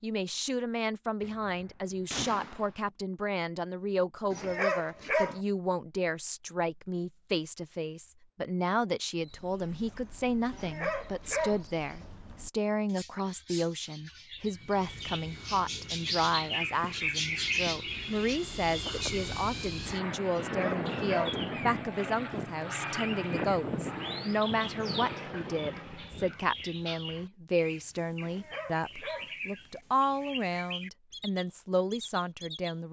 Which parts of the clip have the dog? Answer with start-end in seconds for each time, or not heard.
4.3-5.4, 10.5-11.7, 20.4-21.4, 28.2-29.4.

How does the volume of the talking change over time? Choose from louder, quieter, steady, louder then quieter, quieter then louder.
steady.